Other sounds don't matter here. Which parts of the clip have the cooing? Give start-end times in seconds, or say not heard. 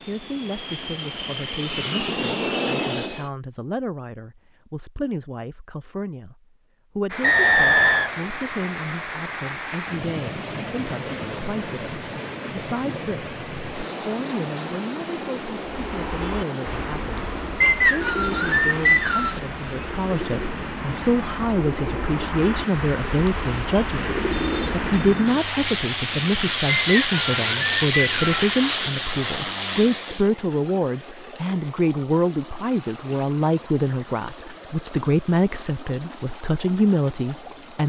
15.7-25.1.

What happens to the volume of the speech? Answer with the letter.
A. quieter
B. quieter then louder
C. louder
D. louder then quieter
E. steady
C.